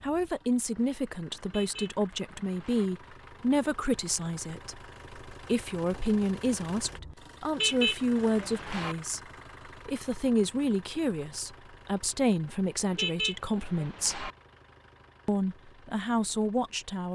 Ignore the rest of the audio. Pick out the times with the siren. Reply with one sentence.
The siren can't be heard in this clip.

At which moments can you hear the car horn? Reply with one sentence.
You can hear the car horn from 1.4 to 2.9 s, from 7.5 to 8.9 s and from 12.9 to 14.3 s.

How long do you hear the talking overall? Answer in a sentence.
You can hear the talking for 16 seconds altogether.